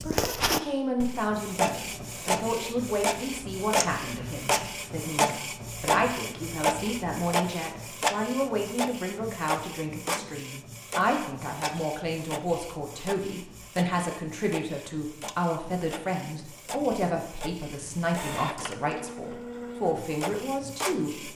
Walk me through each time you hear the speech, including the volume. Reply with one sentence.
You can hear the speech from 0.0 to 21.3 s, at a steady volume.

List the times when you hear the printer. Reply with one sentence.
The printer can be heard from 0.0 to 21.3 s.